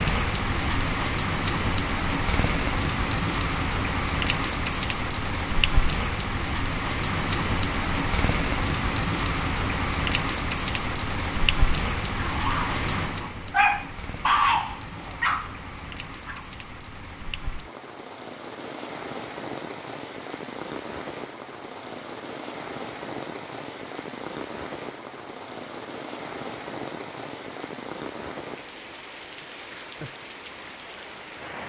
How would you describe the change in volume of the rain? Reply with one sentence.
The loudness of the rain goes down.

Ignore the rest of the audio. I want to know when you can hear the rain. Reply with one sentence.
You can hear the rain from 0.0 to 31.6 s.